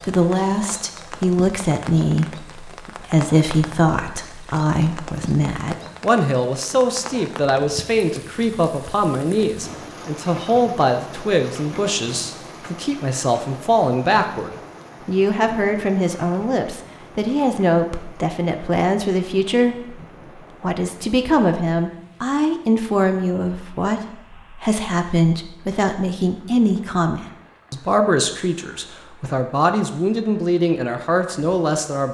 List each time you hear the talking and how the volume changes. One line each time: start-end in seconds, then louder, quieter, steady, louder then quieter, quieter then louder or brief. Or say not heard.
0.0-32.0 steady.